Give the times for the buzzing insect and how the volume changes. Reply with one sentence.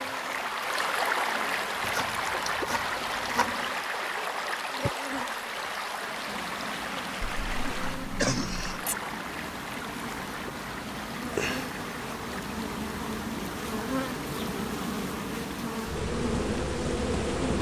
The buzzing insect can be heard from 0.0 to 17.5 s, getting louder.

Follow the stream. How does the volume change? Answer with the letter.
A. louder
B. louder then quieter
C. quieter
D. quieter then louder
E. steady
C.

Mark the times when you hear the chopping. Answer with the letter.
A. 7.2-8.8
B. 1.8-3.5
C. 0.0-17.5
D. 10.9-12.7
B.